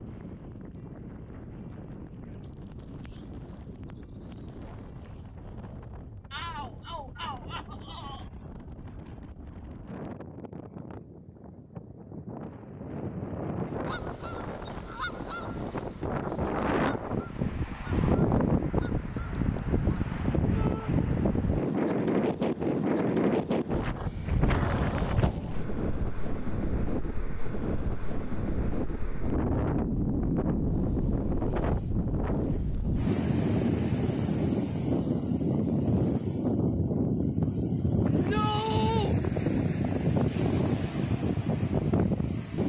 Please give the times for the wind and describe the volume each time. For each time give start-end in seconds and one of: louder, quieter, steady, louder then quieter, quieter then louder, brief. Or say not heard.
0.0-42.6 louder.